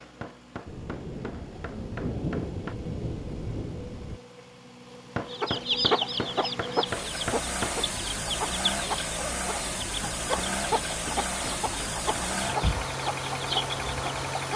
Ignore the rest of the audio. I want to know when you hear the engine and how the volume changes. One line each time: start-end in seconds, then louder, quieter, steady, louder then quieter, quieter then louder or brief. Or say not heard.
0.0-14.5 louder.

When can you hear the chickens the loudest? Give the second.
6 s.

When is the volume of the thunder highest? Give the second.
2 s.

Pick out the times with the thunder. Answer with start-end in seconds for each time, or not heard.
0.7-4.2.